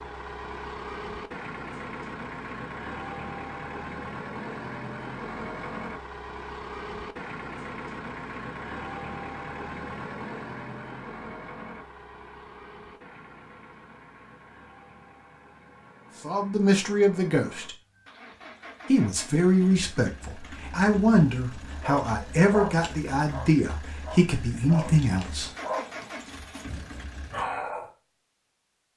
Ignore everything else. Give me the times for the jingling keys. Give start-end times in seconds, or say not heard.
not heard.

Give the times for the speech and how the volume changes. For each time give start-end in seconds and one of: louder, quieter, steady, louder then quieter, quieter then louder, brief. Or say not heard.
16.2-17.8 brief
18.9-25.5 steady.